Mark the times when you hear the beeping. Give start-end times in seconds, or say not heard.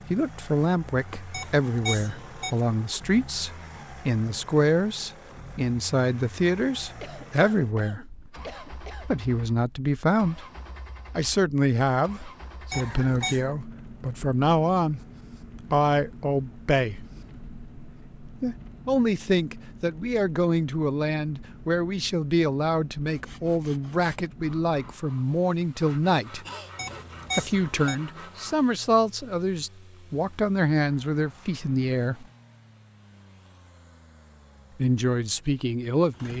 1.3-2.6, 12.7-13.4, 26.8-28.0.